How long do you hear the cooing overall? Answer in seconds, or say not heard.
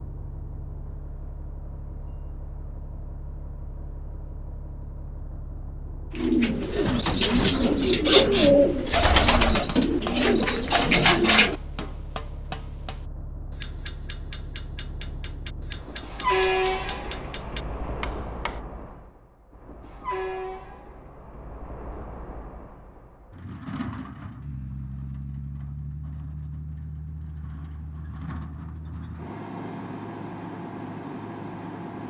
6 s.